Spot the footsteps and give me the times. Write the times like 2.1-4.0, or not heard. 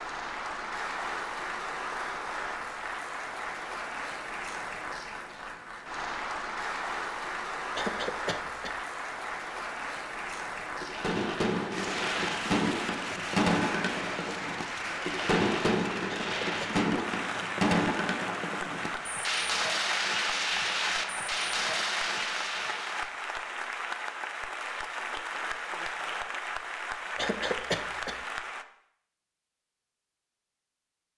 not heard.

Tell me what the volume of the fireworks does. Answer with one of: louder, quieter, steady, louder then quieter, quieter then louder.
steady.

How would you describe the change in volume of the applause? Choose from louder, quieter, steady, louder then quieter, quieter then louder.
steady.